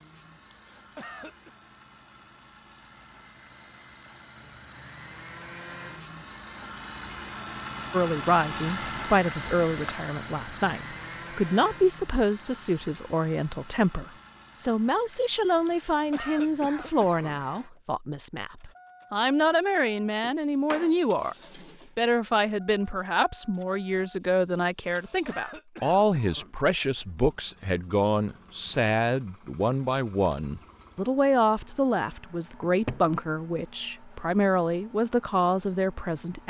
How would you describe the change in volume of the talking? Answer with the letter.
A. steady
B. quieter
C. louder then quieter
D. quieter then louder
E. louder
A.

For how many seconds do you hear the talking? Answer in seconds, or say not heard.
28 s.